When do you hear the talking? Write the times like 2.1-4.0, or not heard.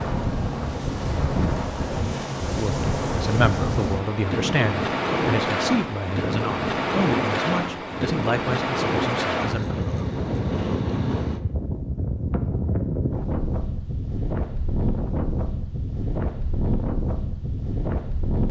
2.5-9.8.